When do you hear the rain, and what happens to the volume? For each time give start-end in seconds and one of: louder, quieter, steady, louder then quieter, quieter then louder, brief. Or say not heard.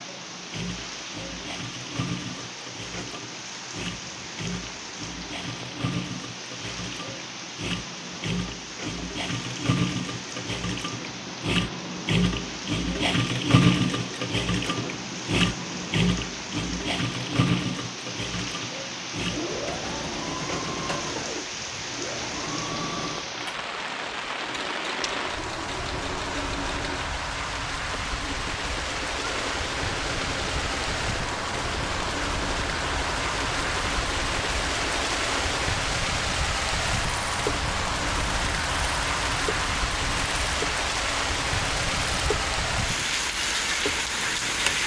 0.0-44.8 louder.